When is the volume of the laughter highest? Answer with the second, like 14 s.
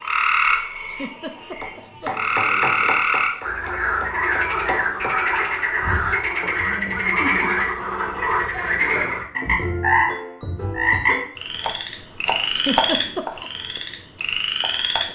13 s.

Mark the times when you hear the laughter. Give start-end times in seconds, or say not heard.
0.9-2.4, 6.5-7.7, 12.6-13.4.